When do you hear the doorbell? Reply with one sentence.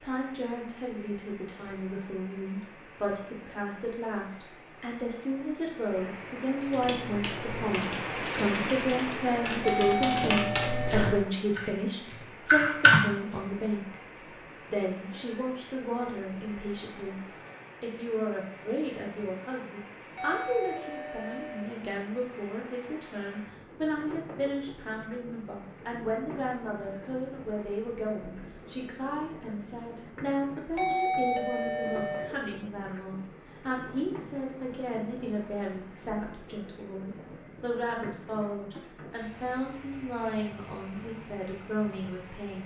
The doorbell can be heard from 9.6 to 11.1 s, from 20.1 to 21.7 s and from 30.8 to 32.3 s.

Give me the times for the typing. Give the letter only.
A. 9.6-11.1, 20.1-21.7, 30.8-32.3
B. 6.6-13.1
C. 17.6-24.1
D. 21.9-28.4
B.